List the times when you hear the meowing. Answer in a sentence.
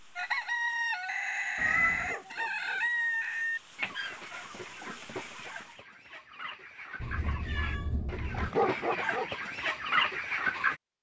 The meowing can be heard from 1.6 to 2.1 s and from 7.0 to 8.5 s.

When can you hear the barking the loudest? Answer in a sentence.
The loudest moment of the barking is at 9 seconds.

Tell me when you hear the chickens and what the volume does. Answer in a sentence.
The chickens can be heard from 0.1 to 10.8 s, getting quieter then louder.